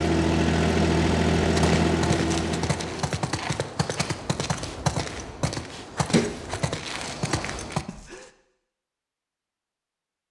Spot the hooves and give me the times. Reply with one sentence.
You can hear the hooves from 1.4 to 8.3 s.